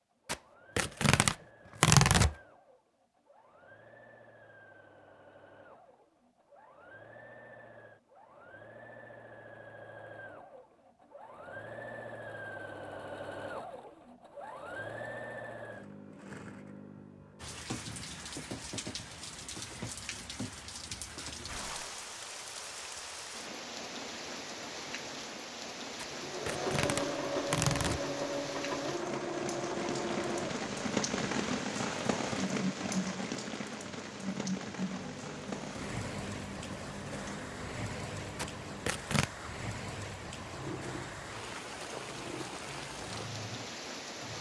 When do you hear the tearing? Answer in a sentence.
You can hear the tearing from 0.2 to 2.4 s, from 25.9 to 28.0 s and from 38.4 to 39.3 s.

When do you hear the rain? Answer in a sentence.
You can hear the rain from 17.4 to 44.3 s.